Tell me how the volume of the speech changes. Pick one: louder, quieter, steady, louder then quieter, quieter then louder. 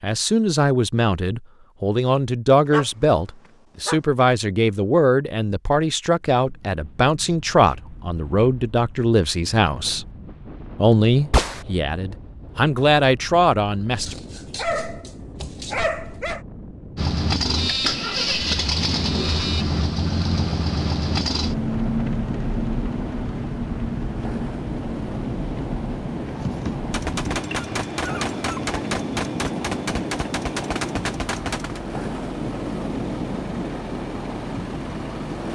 steady.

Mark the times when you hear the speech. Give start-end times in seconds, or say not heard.
0.0-10.1, 10.8-14.2.